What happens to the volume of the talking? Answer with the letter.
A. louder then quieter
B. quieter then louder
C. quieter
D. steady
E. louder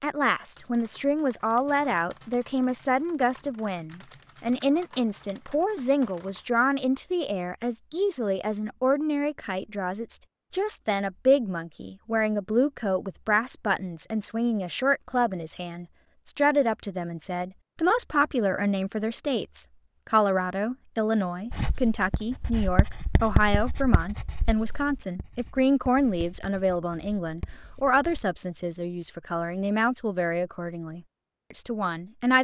D.